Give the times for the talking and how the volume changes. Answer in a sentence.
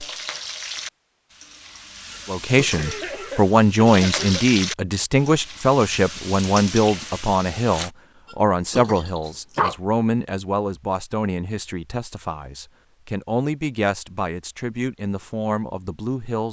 You can hear the talking from 2.2 to 16.4 s, getting quieter.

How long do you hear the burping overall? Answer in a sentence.
The burping can be heard for 2 seconds in total.